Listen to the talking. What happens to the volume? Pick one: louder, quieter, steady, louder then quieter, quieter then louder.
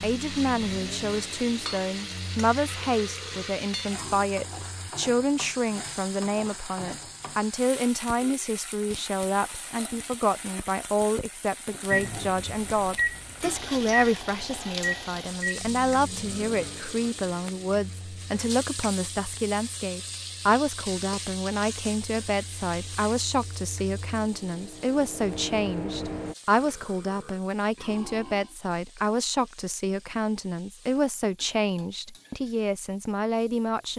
steady.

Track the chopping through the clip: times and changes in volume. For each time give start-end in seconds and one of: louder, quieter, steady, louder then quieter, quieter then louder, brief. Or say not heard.
not heard.